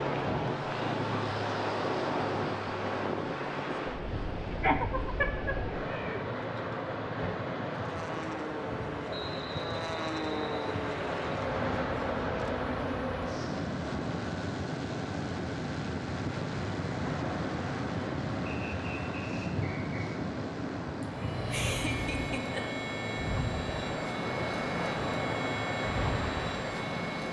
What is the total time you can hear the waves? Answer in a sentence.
You can hear the waves for 27 seconds altogether.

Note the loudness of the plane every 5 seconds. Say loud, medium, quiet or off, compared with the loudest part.
medium, medium, loud, loud, loud, loud.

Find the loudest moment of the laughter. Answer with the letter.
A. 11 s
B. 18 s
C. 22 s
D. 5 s
D.